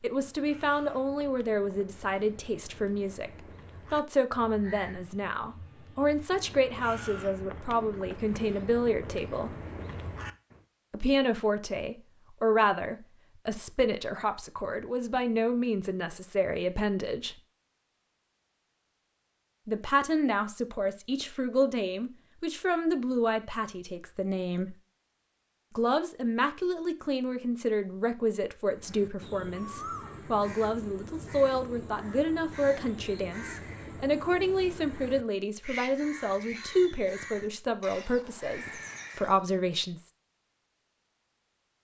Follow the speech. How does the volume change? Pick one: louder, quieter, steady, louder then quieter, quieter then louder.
steady.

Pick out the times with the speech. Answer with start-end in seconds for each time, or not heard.
0.0-9.6, 10.9-17.4, 19.6-24.8, 25.8-40.1.